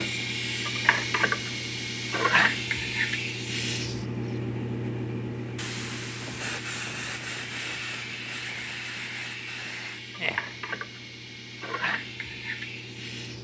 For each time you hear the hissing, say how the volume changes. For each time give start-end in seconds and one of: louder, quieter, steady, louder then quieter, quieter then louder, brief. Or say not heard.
0.0-13.4 quieter.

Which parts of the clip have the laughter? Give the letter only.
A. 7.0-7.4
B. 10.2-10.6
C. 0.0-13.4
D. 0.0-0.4
B.